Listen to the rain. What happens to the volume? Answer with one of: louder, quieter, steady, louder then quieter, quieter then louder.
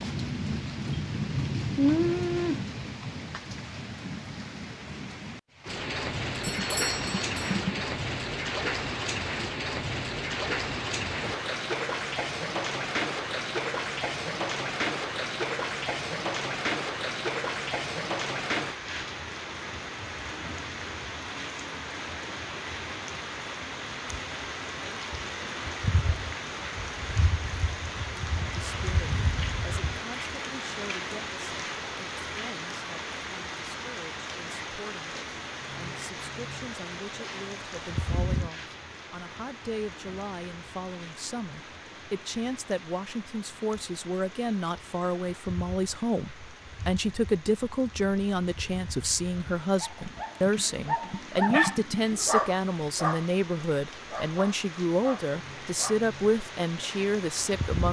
quieter.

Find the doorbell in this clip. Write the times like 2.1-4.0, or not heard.
6.4-7.6.